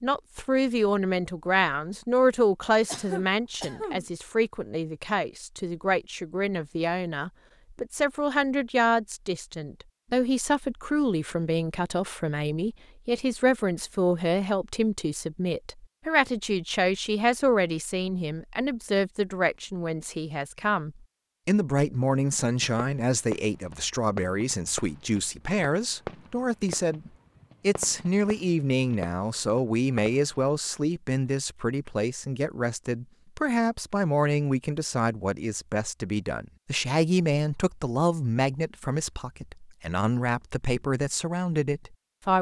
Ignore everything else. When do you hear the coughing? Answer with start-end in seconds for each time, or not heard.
2.9-4.0.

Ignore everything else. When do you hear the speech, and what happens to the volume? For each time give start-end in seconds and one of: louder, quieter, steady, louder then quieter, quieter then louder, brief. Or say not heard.
0.0-42.3 steady.